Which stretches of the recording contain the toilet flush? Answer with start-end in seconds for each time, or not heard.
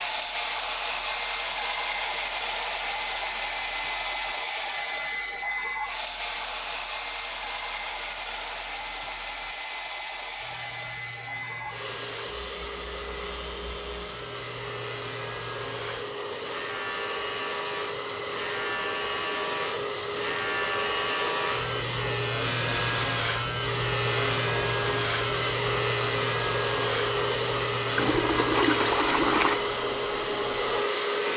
27.9-29.6.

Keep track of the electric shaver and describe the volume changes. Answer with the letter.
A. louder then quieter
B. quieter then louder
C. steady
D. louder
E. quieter
D.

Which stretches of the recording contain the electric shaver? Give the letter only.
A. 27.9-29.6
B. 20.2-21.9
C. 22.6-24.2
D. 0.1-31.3
D.